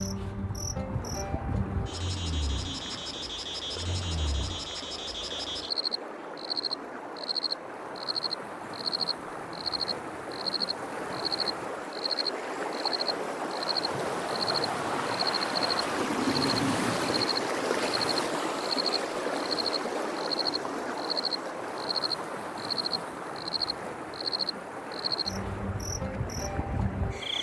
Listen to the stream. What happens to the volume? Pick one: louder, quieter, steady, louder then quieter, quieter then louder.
louder then quieter.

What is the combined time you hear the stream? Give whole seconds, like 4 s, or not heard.
27 s.